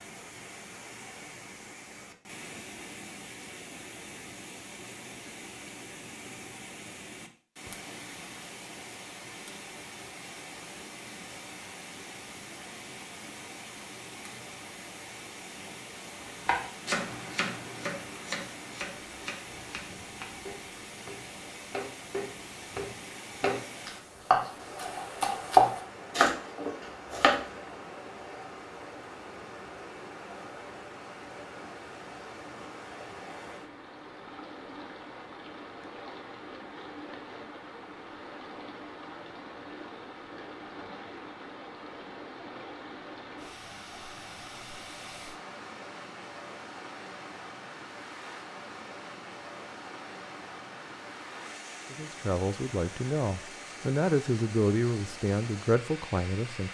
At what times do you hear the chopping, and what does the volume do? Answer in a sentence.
You can hear the chopping from 16.4 to 27.4 s, getting quieter then louder.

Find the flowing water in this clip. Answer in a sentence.
The flowing water can be heard from 0.0 to 56.6 s.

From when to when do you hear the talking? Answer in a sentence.
The talking can be heard from 51.9 to 56.6 s.